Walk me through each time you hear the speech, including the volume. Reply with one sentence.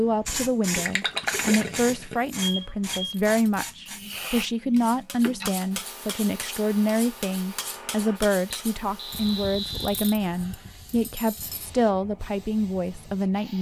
You can hear the speech from 0.0 to 13.5 s, at a steady volume.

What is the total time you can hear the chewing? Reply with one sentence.
The chewing can't be heard in this clip.